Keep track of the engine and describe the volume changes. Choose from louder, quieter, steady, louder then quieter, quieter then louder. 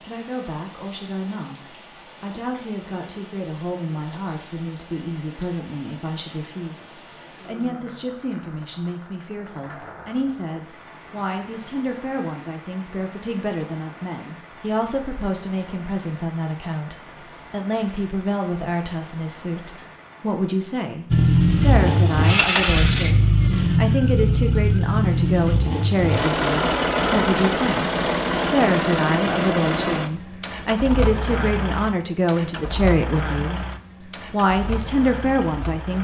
quieter.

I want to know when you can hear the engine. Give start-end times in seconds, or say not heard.
21.1-35.9.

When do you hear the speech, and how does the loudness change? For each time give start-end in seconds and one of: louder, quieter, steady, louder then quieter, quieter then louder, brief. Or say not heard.
0.0-35.9 louder.